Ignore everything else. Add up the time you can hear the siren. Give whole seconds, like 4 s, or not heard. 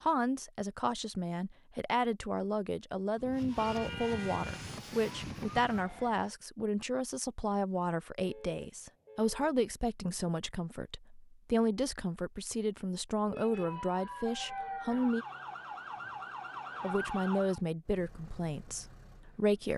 7 s.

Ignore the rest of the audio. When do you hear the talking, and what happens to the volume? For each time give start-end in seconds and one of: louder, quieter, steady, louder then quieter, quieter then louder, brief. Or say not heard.
0.0-15.2 steady
16.8-19.7 brief.